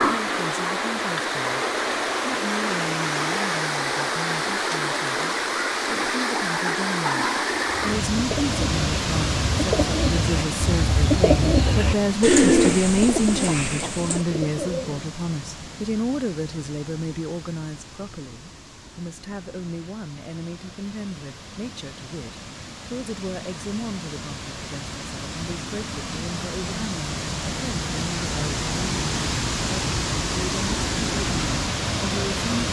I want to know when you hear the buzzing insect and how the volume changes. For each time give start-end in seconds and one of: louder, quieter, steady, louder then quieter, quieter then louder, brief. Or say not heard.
not heard.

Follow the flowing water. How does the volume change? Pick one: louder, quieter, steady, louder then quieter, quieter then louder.
quieter then louder.